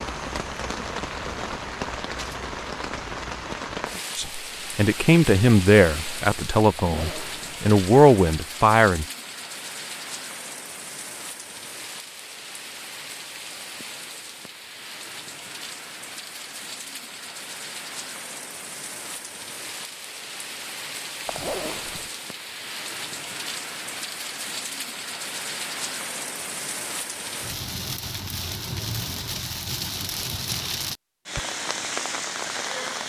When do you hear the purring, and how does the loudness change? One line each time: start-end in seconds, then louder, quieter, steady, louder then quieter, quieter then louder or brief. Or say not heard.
not heard.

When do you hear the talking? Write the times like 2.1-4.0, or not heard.
4.2-9.1.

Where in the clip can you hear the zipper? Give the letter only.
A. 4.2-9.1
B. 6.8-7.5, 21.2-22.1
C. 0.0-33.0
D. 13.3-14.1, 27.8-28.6
B.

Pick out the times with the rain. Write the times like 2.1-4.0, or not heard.
0.0-33.0.